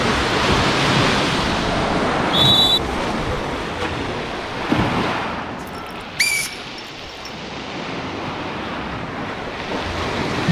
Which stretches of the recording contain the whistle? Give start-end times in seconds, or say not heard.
2.0-2.8, 6.2-7.3.